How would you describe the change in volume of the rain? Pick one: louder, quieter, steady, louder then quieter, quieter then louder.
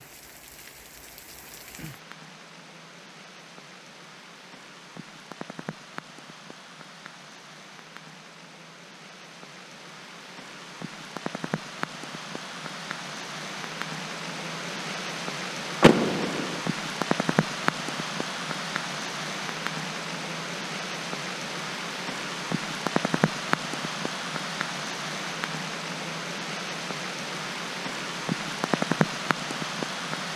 louder.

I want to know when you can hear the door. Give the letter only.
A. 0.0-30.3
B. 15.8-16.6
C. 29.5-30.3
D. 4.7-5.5
B.